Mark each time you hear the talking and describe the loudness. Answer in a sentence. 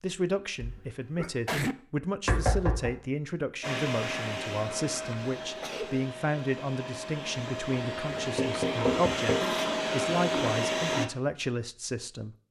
You can hear the talking from 0.0 to 12.3 s, at a steady volume.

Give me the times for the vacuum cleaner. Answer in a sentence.
The vacuum cleaner can be heard from 3.6 to 11.1 s.